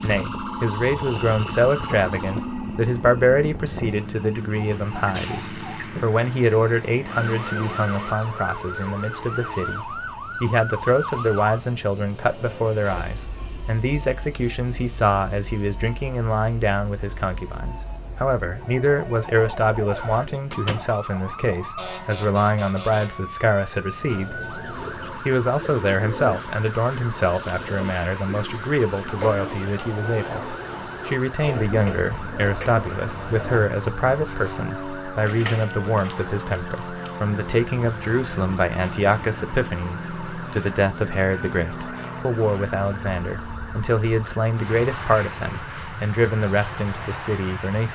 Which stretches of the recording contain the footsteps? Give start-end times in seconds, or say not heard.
not heard.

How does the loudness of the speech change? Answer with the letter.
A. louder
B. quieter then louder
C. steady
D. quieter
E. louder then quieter
C.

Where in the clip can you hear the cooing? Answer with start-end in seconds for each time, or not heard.
24.0-33.6.